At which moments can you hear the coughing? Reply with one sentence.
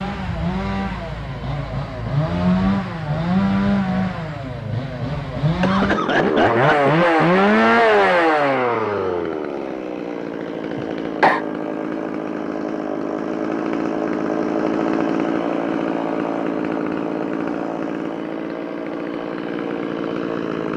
The coughing can be heard from 5.5 to 7.0 s and from 10.8 to 11.4 s.